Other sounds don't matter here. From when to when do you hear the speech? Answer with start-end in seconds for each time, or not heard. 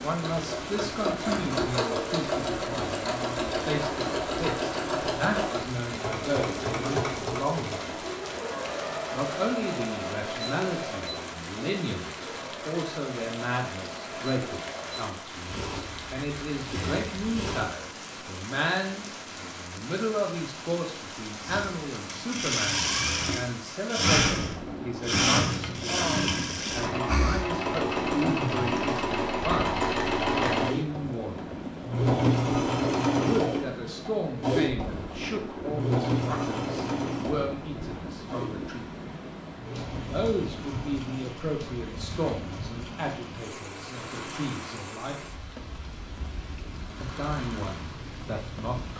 0.0-7.9, 9.1-31.6, 33.2-38.9, 40.1-45.4, 47.0-48.9.